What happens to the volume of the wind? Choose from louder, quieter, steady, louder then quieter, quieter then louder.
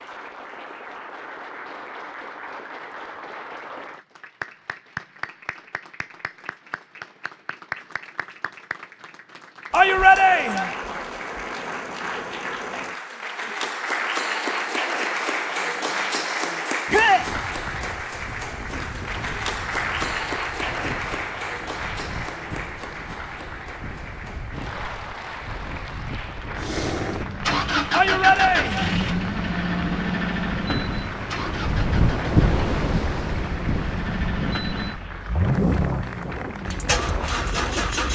louder then quieter.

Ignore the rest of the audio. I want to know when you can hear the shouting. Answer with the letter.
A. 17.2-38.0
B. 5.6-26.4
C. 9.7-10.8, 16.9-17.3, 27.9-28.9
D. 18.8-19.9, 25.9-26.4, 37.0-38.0
C.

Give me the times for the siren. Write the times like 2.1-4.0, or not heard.
not heard.